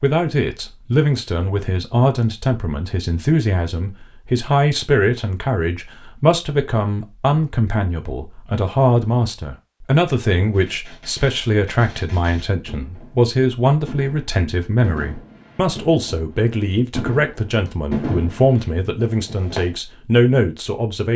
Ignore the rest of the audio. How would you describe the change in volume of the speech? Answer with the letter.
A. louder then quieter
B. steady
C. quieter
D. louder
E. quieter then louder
B.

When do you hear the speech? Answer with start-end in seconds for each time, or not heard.
0.0-21.1.